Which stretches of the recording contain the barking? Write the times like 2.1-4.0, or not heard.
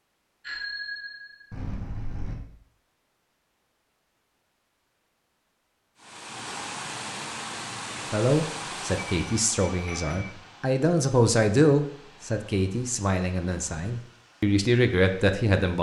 not heard.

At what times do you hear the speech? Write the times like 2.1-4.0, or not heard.
8.1-15.7.